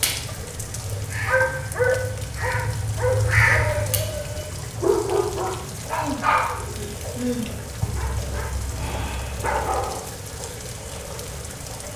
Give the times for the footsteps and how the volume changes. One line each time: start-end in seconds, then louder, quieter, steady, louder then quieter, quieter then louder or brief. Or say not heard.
not heard.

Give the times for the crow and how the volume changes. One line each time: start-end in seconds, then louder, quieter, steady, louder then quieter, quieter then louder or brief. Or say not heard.
0.0-4.5 louder.